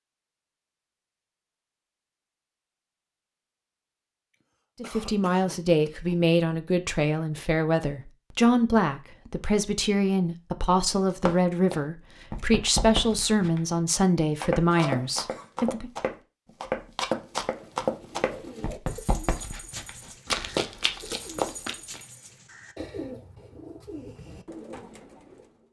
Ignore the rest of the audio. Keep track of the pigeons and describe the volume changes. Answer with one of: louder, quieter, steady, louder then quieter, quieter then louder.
steady.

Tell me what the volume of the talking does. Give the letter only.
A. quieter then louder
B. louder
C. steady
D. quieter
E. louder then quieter
C.